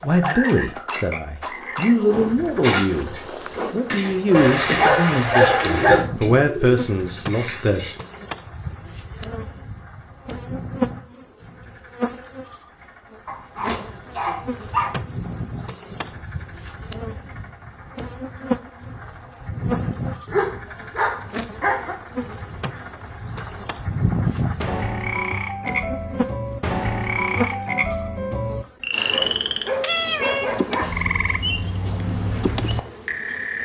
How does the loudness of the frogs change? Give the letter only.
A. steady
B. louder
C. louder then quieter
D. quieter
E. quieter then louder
E.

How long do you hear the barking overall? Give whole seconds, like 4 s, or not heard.
7 s.